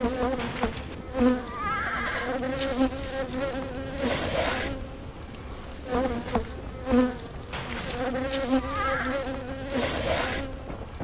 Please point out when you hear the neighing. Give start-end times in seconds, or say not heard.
0.3-2.4, 7.5-9.2.